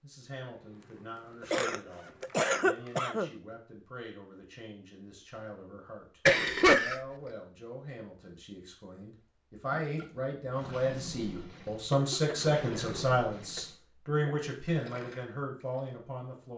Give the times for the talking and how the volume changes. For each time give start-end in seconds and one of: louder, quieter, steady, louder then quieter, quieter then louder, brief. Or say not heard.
0.0-16.5 louder.